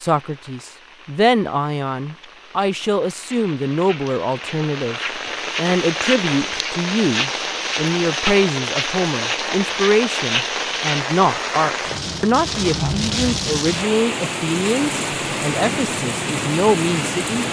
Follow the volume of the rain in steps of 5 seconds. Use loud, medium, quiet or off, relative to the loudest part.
quiet, loud, loud, loud.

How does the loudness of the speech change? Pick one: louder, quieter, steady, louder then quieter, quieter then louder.
steady.